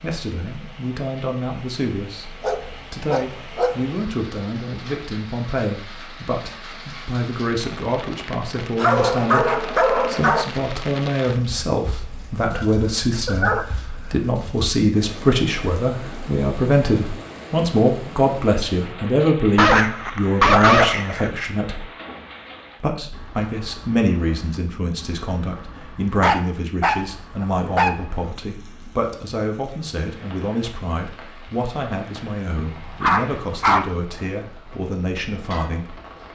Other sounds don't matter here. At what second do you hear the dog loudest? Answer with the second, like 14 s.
21 s.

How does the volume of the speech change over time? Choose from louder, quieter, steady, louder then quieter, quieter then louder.
louder then quieter.